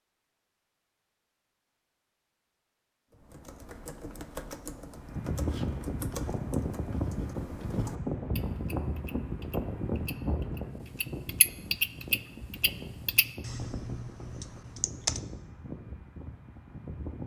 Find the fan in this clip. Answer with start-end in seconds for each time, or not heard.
5.0-17.2.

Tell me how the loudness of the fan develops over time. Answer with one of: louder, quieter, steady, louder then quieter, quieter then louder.
quieter.